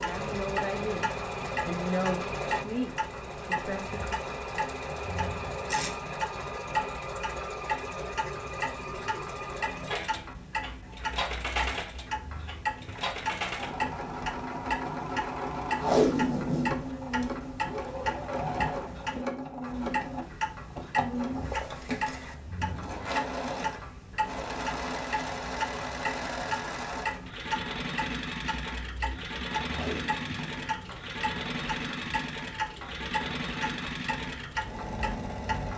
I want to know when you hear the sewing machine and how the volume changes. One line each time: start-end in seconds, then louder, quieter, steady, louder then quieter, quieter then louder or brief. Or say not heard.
0.0-35.7 steady.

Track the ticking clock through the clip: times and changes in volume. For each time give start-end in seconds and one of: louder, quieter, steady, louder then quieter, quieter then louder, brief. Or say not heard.
0.0-35.7 steady.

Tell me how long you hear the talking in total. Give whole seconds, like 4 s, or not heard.
4 s.